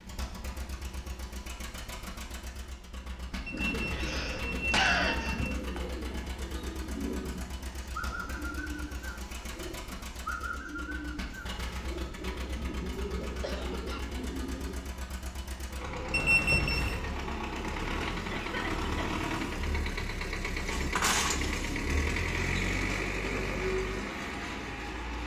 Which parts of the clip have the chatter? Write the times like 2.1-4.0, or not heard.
not heard.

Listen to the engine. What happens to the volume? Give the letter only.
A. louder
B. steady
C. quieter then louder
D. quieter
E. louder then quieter
A.